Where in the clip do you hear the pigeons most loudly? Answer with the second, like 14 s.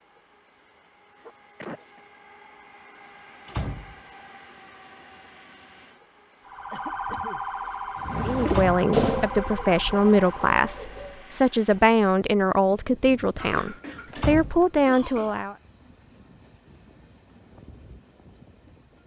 9 s.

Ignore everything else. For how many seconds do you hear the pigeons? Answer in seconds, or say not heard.
3 s.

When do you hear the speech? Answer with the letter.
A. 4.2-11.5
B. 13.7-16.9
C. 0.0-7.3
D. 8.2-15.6
D.